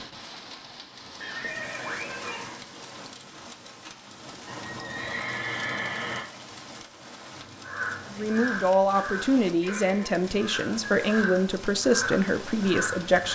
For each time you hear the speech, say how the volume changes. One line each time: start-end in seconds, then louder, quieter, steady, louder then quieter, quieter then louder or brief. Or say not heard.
8.1-13.3 steady.